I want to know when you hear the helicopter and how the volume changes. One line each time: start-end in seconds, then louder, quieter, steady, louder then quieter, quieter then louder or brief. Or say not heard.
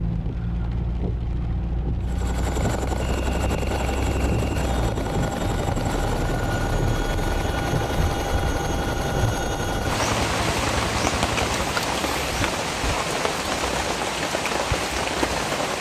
2.0-11.9 steady.